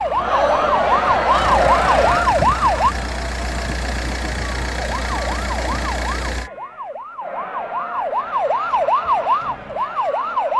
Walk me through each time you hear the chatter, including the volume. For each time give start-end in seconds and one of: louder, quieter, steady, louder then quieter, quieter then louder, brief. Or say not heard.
0.0-10.5 quieter.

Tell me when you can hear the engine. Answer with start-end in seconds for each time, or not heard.
0.0-6.5.